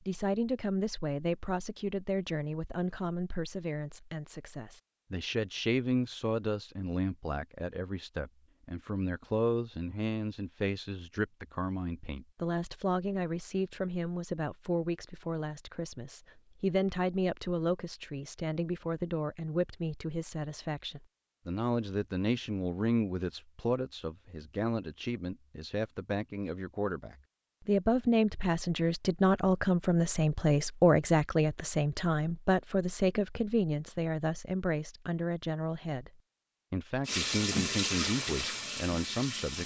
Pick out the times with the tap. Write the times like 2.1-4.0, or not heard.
37.0-39.6.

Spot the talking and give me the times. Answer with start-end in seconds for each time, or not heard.
0.1-39.6.